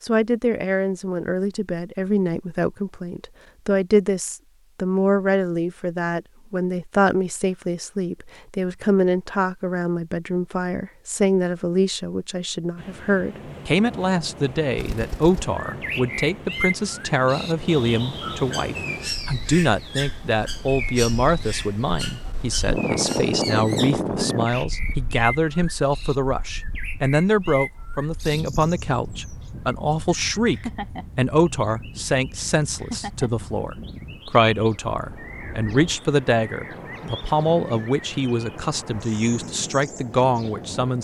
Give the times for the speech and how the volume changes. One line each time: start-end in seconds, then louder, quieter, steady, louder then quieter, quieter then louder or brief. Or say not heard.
0.0-40.9 steady.